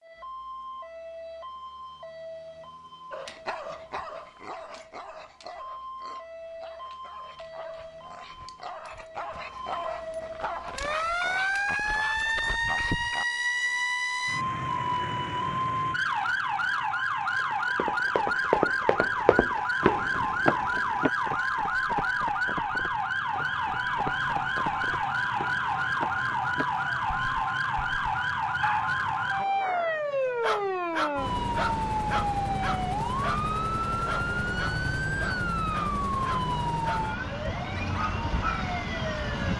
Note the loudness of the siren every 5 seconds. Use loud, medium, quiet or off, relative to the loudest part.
quiet, quiet, loud, loud, loud, loud, loud, loud.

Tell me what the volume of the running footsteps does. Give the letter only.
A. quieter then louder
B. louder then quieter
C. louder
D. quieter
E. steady
D.